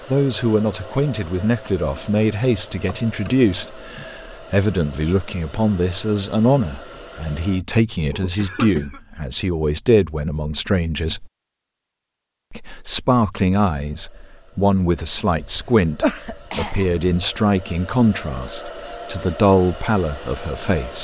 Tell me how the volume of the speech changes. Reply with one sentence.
The loudness of the speech stays about the same.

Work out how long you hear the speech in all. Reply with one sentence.
You can hear the speech for 20 seconds altogether.